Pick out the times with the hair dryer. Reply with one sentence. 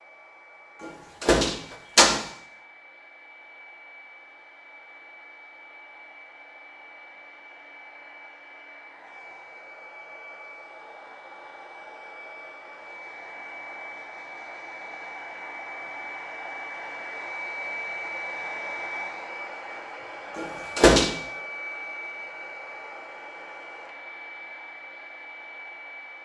You can hear the hair dryer from 0.0 to 26.2 s.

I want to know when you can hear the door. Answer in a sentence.
You can hear the door from 0.8 to 2.2 s and from 20.4 to 21.1 s.